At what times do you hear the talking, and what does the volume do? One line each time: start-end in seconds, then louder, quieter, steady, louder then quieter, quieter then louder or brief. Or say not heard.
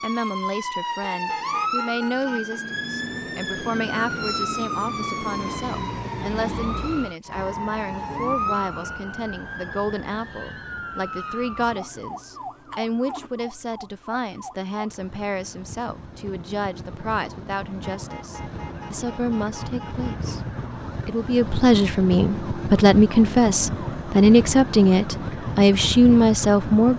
0.0-26.9 louder.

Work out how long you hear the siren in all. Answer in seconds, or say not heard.
27 s.